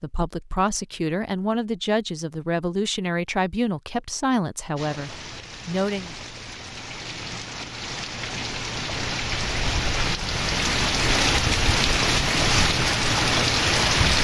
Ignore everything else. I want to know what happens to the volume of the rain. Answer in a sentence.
The loudness of the rain goes up.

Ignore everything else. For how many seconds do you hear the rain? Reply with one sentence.
The rain can be heard for 9 seconds in total.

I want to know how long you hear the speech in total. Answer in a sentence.
The speech can be heard for 6 seconds in total.